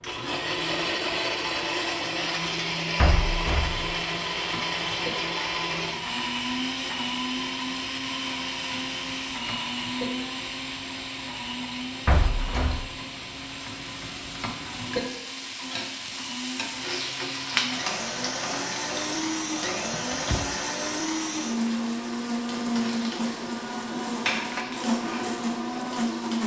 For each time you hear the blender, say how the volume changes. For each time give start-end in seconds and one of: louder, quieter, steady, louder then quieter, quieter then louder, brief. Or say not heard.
0.0-26.4 quieter then louder.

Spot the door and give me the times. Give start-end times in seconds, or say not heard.
3.0-3.9, 12.1-12.9, 19.8-20.6.